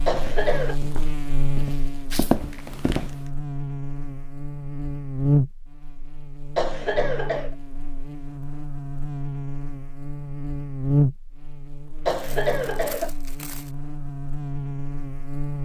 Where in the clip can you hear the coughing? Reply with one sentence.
You can hear the coughing from 0.1 to 0.8 s, from 6.5 to 7.5 s and from 12.1 to 13.1 s.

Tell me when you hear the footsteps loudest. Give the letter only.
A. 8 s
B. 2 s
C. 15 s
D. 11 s
B.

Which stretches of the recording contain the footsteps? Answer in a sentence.
The footsteps can be heard from 0.1 to 3.2 s.